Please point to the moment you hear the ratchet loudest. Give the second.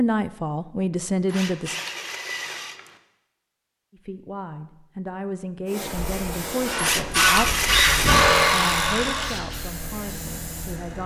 7 s.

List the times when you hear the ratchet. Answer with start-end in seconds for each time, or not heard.
1.2-3.0, 6.8-8.2.